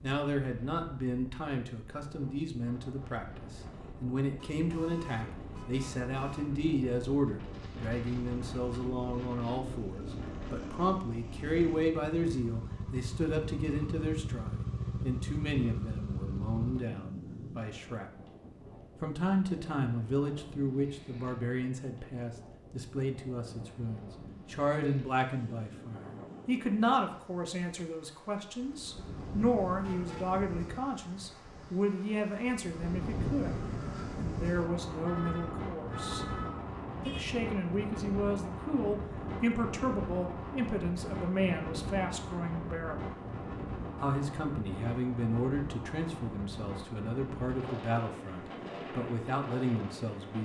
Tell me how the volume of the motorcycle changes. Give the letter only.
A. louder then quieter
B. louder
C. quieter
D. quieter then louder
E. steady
B.